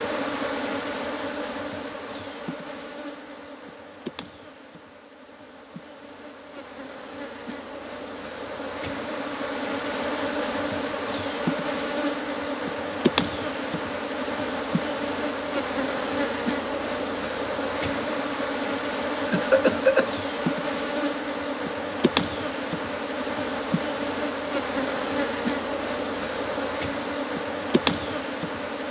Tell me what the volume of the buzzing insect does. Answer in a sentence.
The volume of the buzzing insect goes up.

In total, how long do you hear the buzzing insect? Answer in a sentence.
You can hear the buzzing insect for 29 seconds altogether.